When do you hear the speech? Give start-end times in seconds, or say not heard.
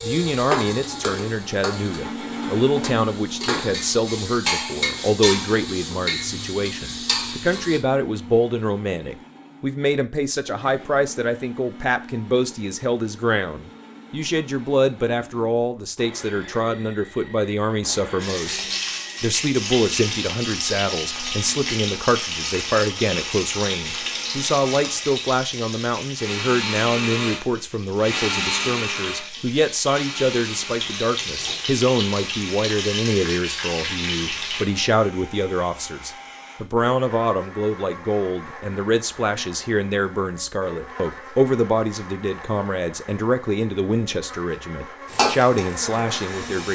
0.0-46.7.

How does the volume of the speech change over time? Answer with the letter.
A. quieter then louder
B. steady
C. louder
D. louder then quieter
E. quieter
B.